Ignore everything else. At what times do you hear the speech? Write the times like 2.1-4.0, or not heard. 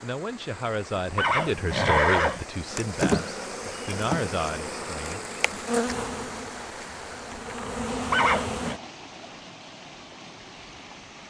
0.0-5.2.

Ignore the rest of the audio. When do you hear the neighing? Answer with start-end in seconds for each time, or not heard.
1.1-2.5, 8.1-8.8.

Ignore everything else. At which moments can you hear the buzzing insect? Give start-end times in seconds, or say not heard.
2.7-8.8.